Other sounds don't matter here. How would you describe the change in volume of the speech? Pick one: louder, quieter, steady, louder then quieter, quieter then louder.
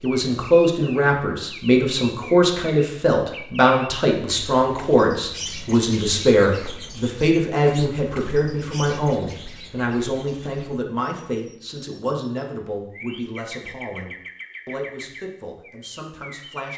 quieter.